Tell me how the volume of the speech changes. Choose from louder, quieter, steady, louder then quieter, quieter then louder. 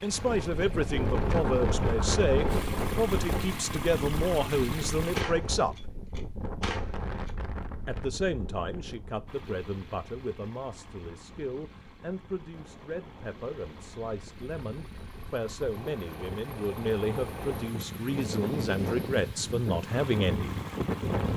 quieter then louder.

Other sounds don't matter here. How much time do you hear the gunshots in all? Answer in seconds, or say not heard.
2 s.